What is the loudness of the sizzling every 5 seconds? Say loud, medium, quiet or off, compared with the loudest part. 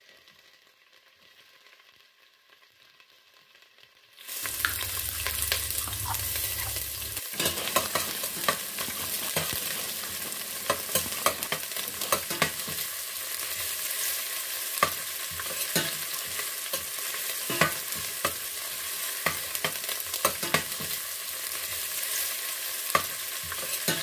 quiet, loud, loud, loud, loud.